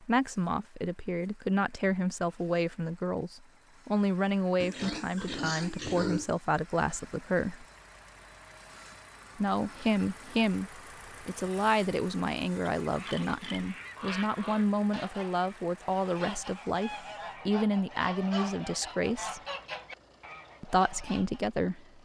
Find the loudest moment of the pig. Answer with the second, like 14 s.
6 s.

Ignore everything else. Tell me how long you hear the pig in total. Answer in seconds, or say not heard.
3 s.